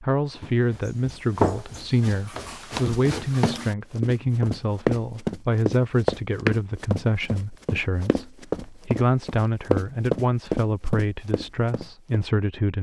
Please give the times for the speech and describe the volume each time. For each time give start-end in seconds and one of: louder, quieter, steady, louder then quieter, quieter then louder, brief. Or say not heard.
0.0-12.7 steady.